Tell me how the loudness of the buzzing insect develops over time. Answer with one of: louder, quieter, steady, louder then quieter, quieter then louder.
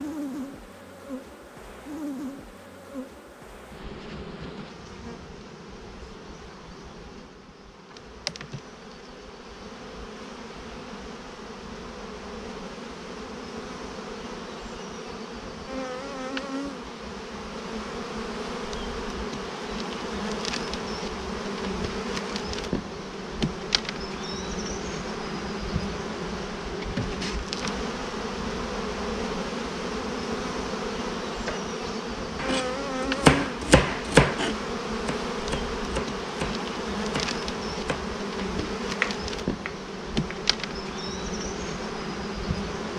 louder.